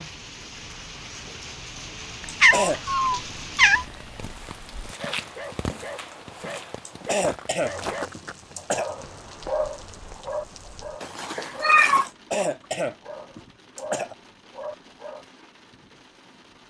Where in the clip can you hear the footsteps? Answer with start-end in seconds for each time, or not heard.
4.2-12.2.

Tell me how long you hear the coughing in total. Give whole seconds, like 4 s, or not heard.
5 s.